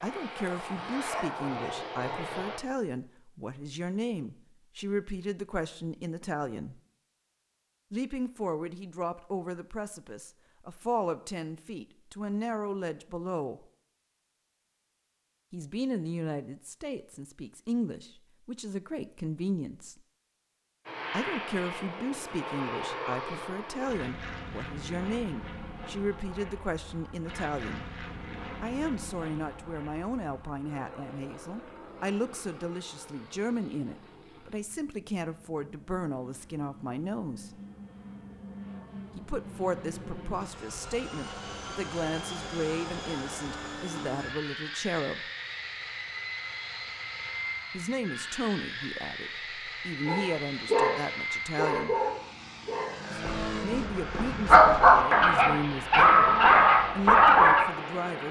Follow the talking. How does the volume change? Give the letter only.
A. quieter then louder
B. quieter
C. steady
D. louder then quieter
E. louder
C.